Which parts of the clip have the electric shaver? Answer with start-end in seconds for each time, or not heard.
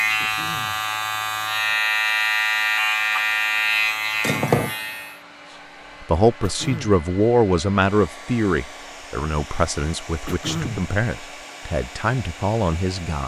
0.0-5.2.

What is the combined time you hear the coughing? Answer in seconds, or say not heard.
2 s.